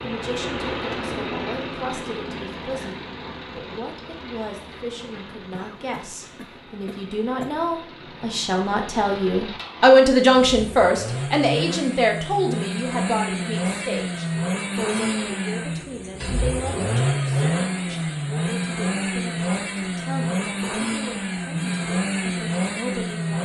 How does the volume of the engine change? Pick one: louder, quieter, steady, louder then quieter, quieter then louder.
quieter then louder.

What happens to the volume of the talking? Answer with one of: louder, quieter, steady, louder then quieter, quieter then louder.
louder then quieter.